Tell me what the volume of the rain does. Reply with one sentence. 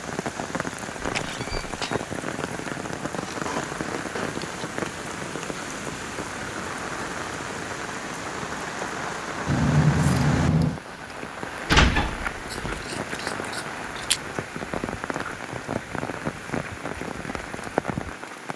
The loudness of the rain stays about the same.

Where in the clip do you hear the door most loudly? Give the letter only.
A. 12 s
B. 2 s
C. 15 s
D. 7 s
A.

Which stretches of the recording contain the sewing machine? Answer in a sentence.
The sewing machine can't be heard in this clip.